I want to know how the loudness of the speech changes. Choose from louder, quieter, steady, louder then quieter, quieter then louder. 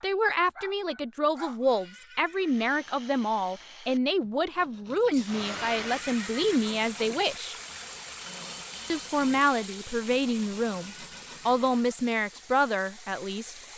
steady.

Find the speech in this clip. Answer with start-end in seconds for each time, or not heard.
0.0-7.5, 8.9-13.6.